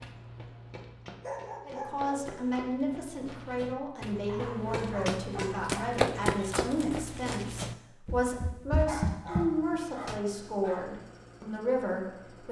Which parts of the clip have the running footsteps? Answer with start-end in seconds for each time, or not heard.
0.0-10.2.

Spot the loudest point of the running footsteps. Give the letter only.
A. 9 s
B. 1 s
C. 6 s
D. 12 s
C.